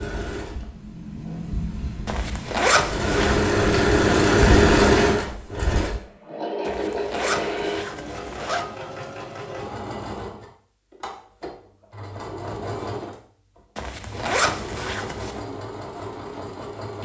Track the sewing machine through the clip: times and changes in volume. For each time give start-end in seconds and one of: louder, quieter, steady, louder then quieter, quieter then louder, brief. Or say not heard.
0.0-17.0 louder then quieter.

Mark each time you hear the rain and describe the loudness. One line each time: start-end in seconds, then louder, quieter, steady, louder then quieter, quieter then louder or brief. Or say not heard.
not heard.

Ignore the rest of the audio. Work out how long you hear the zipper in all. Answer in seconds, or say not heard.
5 s.